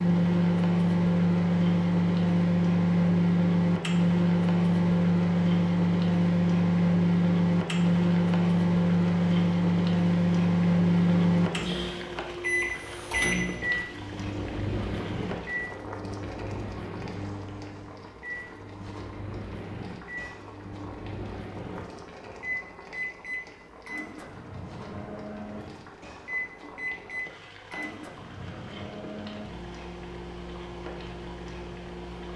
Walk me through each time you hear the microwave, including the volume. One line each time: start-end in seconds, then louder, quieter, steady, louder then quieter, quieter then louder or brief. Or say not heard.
0.0-32.3 quieter.